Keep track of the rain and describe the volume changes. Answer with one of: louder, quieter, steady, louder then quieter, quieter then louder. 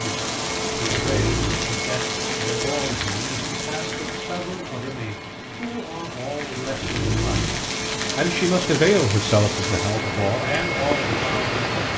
quieter then louder.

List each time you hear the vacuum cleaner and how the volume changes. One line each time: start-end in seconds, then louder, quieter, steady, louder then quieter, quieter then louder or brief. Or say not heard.
0.0-11.9 quieter then louder.